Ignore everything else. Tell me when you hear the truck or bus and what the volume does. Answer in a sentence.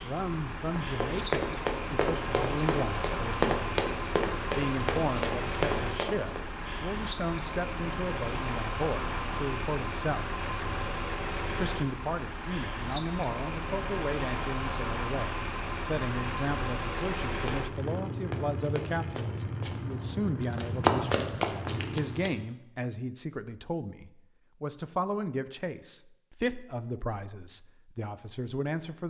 The truck or bus can be heard from 0.0 to 22.4 s, at a steady volume.